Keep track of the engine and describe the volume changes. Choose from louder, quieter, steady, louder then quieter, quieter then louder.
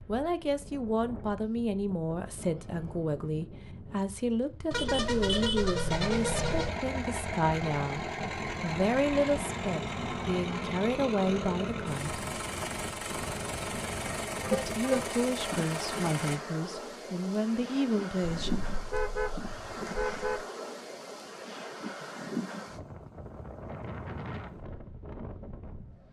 steady.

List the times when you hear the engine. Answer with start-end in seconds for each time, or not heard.
5.9-16.4.